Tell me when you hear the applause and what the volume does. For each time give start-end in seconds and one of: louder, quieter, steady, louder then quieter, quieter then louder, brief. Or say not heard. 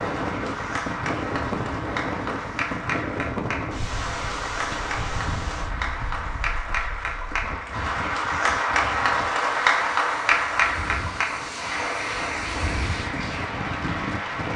0.0-14.5 louder then quieter.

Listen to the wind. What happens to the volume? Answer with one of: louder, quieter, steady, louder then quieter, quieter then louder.
quieter then louder.